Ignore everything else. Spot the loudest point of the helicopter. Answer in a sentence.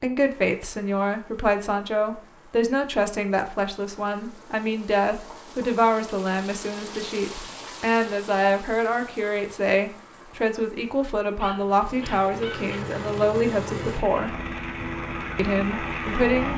The volume of the helicopter peaks at 16 seconds.